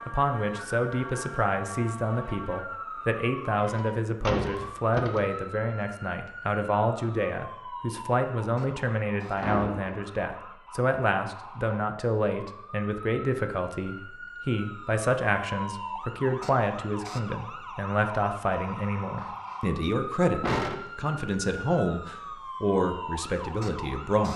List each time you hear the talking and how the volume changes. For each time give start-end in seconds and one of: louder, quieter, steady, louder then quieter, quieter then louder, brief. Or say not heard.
0.1-24.3 steady.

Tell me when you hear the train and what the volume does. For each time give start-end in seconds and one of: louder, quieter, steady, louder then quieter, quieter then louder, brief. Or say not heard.
not heard.